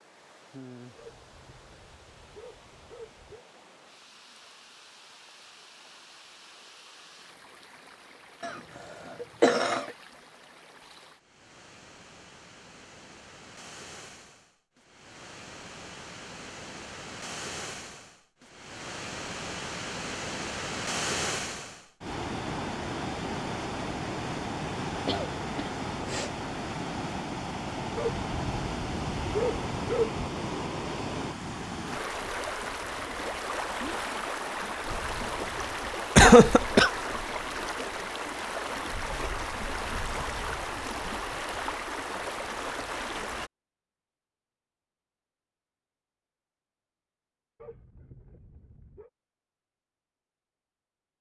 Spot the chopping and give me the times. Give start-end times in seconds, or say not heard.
not heard.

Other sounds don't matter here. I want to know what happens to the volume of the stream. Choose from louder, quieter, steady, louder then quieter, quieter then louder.
louder.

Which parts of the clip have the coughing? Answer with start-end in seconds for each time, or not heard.
8.4-9.9, 25.1-26.4, 36.1-36.9.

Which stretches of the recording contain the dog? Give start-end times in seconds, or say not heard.
0.9-3.5, 27.9-30.2, 47.5-49.1.